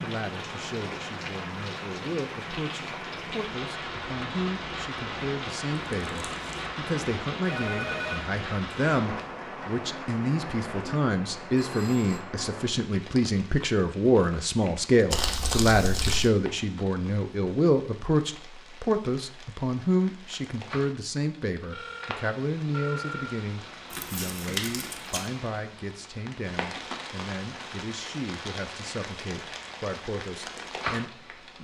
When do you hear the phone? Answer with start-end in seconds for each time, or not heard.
7.5-8.2, 11.6-12.2, 21.7-23.4.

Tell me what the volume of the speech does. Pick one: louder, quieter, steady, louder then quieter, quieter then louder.
louder then quieter.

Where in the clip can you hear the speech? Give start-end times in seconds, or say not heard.
0.0-31.6.